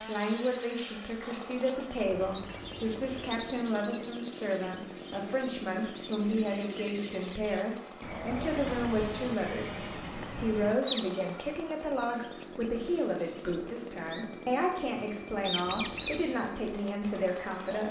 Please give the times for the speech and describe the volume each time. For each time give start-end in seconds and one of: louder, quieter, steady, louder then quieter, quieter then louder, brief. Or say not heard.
0.0-17.8 steady.